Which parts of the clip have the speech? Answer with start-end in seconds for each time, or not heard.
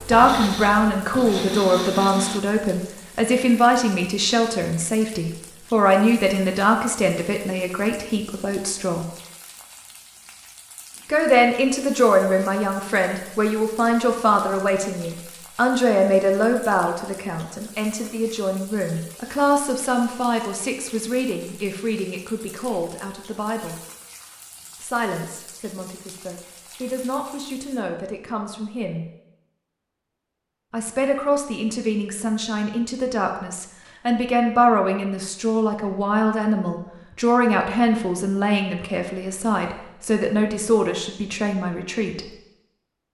0.1-9.1, 11.1-23.8, 24.8-29.1, 30.7-42.2.